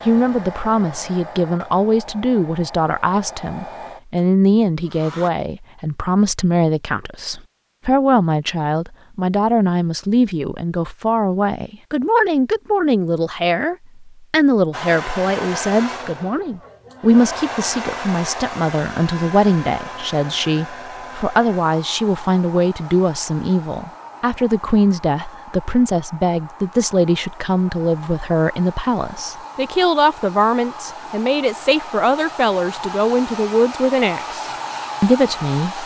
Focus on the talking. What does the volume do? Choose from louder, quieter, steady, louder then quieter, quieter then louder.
steady.